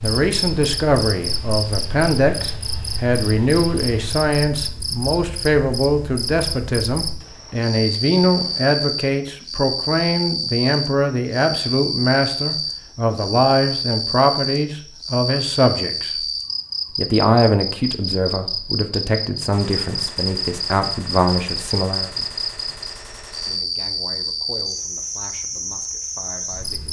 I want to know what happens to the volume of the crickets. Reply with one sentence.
The volume of the crickets stays about the same.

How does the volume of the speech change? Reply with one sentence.
The loudness of the speech goes down.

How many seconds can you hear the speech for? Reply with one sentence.
The speech can be heard for 25 seconds in total.